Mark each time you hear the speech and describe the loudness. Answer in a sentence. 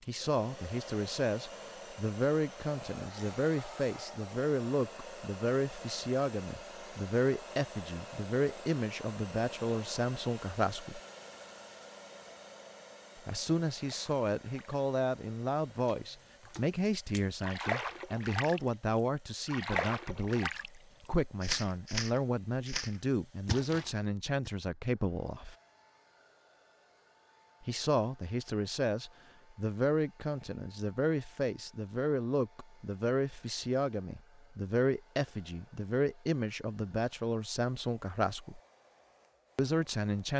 The speech can be heard from 0.1 to 11.0 s, at a steady volume; from 13.2 to 25.6 s, at a steady volume; from 27.6 to 38.6 s, at a steady volume; and briefly from 39.5 to 40.3 s.